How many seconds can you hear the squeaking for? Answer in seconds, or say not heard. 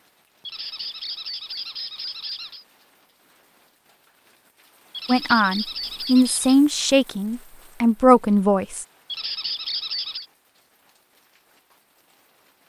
5 s.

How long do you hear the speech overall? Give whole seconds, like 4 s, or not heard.
4 s.